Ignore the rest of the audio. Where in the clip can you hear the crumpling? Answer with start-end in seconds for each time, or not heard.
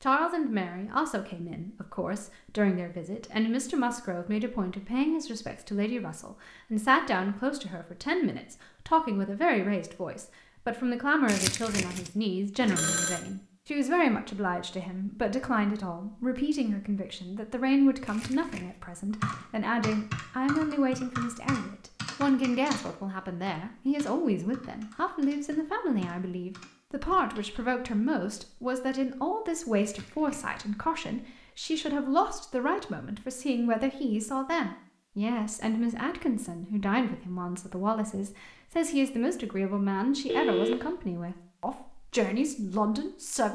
11.2-12.1, 18.1-18.8, 29.8-30.6.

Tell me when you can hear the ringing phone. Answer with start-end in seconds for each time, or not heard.
12.6-13.2, 40.2-40.8.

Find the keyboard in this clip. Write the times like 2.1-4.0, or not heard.
19.2-27.6.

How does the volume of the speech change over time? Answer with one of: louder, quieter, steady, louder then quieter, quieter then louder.
steady.